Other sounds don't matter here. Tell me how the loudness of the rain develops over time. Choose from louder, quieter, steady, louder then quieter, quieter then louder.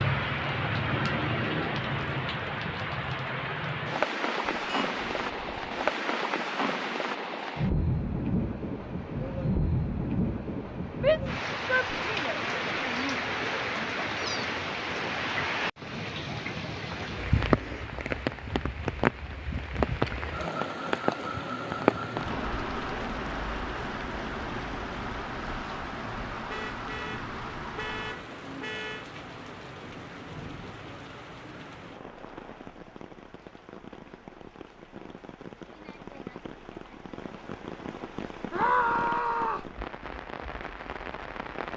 quieter.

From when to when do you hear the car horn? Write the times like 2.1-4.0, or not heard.
4.5-5.9, 26.5-29.1.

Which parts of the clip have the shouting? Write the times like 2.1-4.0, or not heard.
11.0-13.2, 38.5-39.7.